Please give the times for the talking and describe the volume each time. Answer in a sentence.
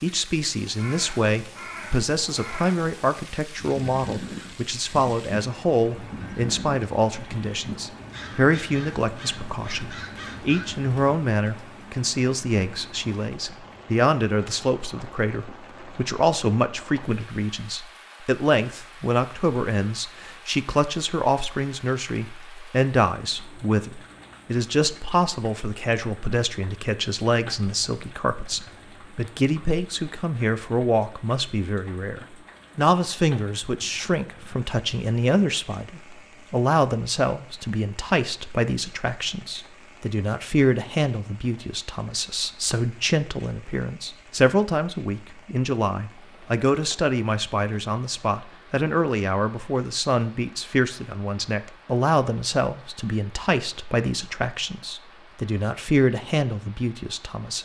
You can hear the talking from 0.0 to 57.5 s, at a steady volume.